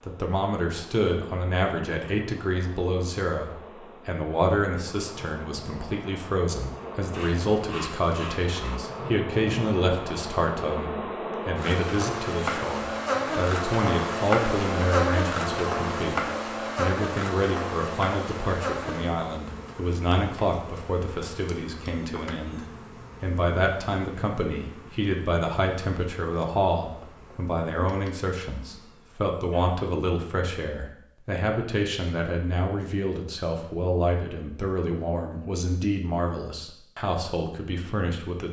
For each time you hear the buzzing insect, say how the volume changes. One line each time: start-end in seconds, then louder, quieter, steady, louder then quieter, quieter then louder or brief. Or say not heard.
0.0-29.3 louder then quieter.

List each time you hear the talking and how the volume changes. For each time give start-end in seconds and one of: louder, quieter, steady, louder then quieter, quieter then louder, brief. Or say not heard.
0.1-38.4 steady.